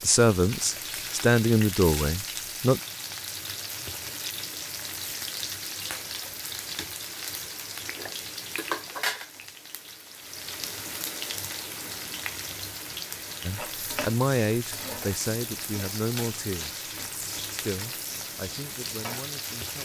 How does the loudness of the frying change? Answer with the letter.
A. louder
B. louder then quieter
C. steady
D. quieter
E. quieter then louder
C.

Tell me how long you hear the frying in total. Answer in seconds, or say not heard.
20 s.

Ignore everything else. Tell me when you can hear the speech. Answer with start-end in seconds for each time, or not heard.
0.0-2.8, 13.4-16.9, 17.5-19.8.